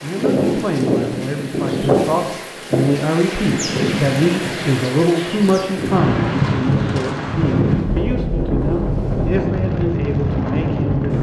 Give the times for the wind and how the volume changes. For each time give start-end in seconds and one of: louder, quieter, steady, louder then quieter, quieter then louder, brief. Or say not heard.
0.0-11.1 steady.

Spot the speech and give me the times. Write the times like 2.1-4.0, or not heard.
0.0-11.1.